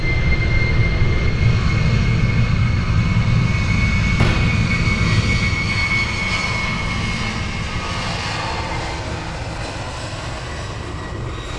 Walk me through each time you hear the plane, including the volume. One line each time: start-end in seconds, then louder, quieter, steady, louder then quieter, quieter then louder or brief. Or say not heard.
0.0-11.5 quieter.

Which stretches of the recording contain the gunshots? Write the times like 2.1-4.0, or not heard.
4.2-4.7.